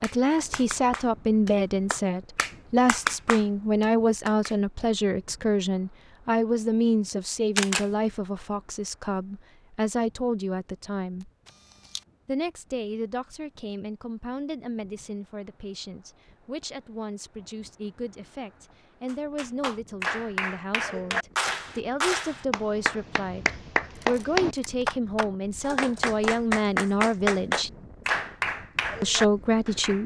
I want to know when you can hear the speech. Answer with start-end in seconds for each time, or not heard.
0.0-11.3, 12.2-27.7, 29.0-30.0.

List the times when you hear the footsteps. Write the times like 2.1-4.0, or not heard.
not heard.